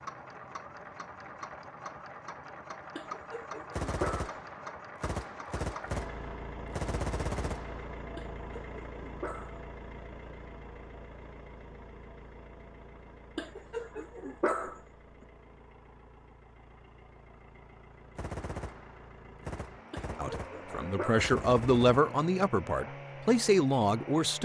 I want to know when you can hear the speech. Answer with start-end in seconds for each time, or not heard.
20.1-24.3.